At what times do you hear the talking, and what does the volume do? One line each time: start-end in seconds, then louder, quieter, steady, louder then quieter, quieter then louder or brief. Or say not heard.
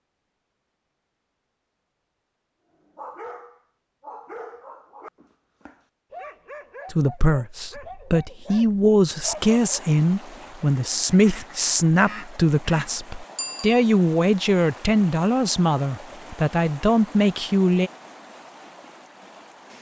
6.9-17.9 steady.